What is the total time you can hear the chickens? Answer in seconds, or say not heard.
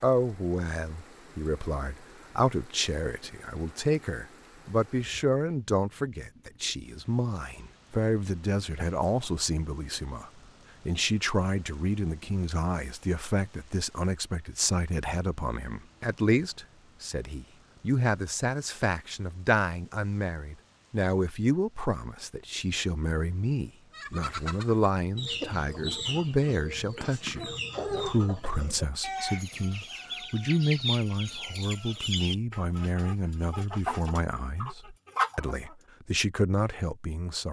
12 s.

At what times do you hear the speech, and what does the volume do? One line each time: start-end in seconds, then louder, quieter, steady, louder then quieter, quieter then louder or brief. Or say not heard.
0.0-37.4 steady.